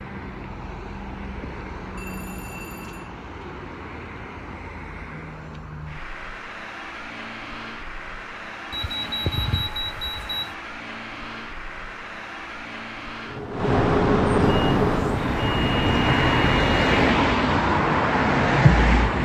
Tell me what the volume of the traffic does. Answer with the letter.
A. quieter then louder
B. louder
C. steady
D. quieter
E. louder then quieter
B.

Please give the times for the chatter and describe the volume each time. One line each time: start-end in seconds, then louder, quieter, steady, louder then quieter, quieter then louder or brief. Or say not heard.
not heard.